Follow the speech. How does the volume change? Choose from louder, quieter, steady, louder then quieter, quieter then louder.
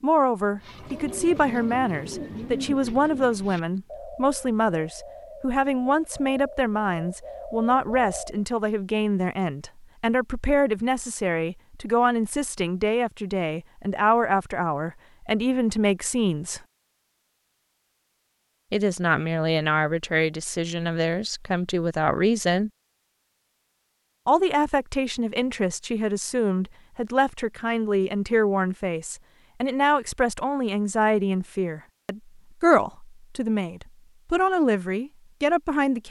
steady.